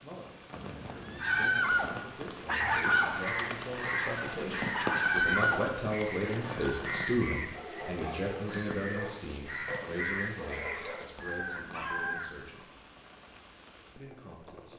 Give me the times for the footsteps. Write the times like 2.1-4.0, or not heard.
not heard.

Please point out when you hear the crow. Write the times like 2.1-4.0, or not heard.
2.5-12.5.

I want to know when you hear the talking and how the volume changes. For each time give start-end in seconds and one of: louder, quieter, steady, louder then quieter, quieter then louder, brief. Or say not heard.
0.0-12.7 louder then quieter
13.9-14.7 brief.